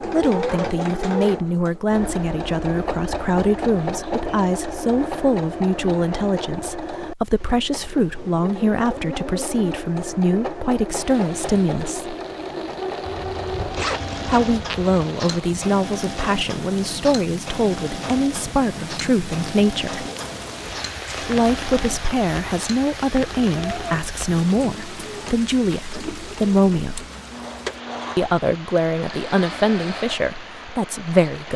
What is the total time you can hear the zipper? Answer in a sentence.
You can hear the zipper for 2 seconds altogether.